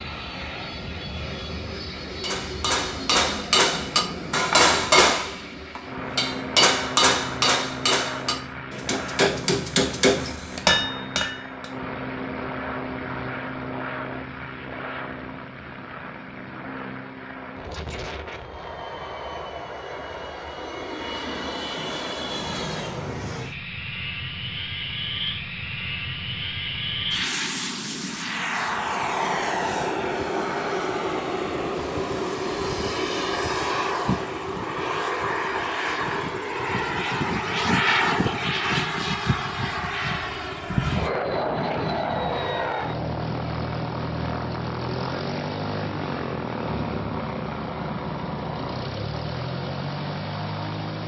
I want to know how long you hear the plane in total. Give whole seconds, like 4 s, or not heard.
51 s.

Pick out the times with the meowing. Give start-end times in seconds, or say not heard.
not heard.